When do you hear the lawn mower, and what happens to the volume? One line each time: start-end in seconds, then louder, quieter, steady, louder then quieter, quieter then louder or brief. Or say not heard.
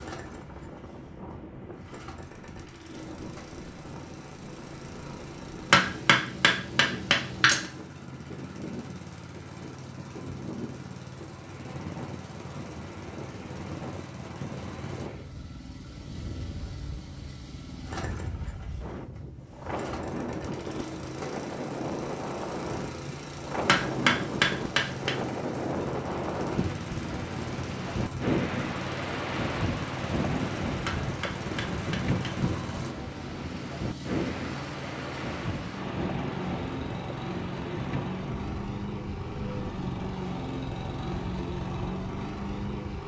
0.0-43.0 louder.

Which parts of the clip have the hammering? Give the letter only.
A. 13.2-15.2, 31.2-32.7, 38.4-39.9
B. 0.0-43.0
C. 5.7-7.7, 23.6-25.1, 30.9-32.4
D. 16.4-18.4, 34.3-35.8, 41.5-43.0
C.